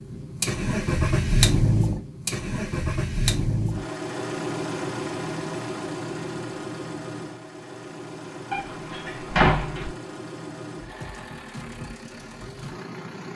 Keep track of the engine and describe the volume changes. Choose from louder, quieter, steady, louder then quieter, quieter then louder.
quieter.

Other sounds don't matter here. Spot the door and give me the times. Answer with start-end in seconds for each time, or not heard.
8.5-9.9.